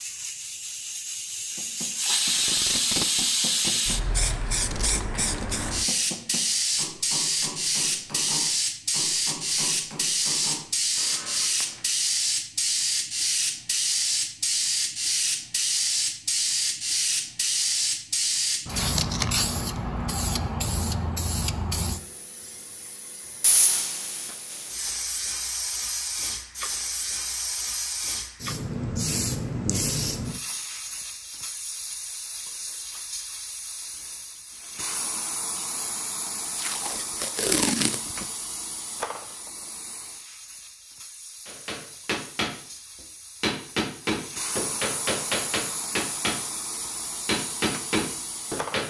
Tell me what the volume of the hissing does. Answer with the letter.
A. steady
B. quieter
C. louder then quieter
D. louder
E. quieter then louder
B.